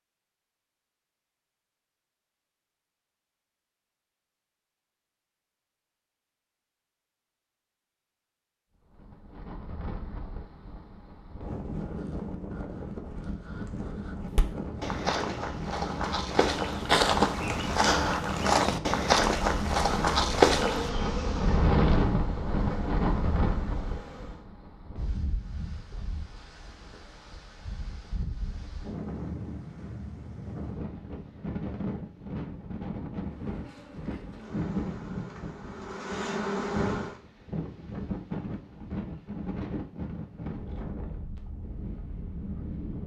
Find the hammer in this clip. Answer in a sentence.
You can't hear the hammer here.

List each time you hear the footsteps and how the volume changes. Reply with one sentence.
The footsteps can be heard from 14.3 to 20.9 s, getting louder.